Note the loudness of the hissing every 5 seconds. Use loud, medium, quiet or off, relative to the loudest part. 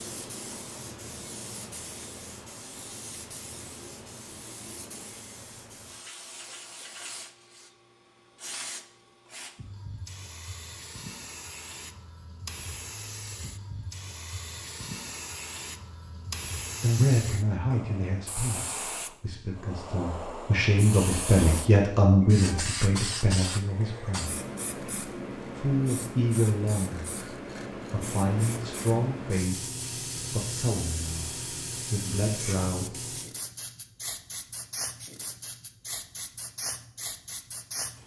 medium, medium, medium, loud, loud, loud, loud, medium.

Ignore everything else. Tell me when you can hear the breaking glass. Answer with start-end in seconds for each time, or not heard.
not heard.